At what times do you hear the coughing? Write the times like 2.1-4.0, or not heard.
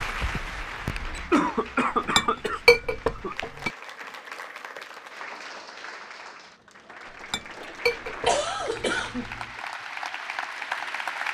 0.8-3.4, 8.2-9.4.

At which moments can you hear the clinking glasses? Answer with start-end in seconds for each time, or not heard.
2.0-3.7, 7.1-9.1.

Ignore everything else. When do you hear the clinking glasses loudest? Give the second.
3 s.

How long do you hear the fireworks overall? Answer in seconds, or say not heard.
not heard.